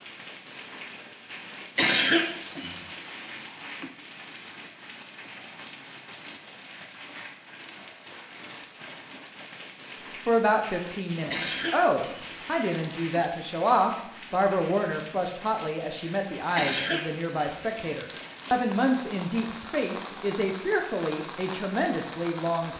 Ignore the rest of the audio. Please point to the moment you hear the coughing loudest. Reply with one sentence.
The volume of the coughing peaks at 2 seconds.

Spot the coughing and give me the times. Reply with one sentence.
The coughing can be heard from 1.8 to 2.9 s, from 11.3 to 13.3 s and from 16.6 to 18.6 s.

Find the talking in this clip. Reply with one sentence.
The talking can be heard from 10.2 to 22.7 s.